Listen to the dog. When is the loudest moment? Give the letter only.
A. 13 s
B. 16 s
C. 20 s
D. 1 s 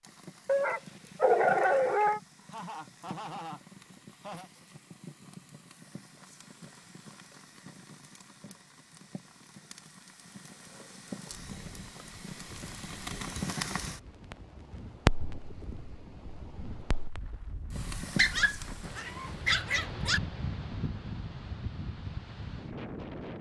D.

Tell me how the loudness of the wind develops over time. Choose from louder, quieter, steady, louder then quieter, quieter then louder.
louder.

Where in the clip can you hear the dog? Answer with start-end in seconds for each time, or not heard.
0.5-2.2, 18.1-20.2.